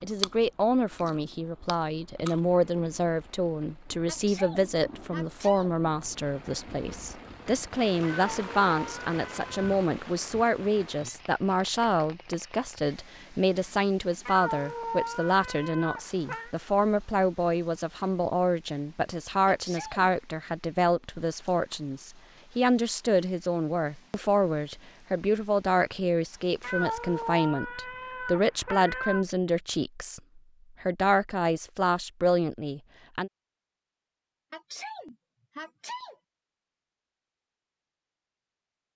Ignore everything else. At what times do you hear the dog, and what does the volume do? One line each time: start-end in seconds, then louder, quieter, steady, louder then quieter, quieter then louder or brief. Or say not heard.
not heard.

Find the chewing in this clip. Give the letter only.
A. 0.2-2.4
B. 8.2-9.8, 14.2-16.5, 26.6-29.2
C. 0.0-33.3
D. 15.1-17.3
A.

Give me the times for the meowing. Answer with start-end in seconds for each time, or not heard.
8.2-9.8, 14.2-16.5, 26.6-29.2.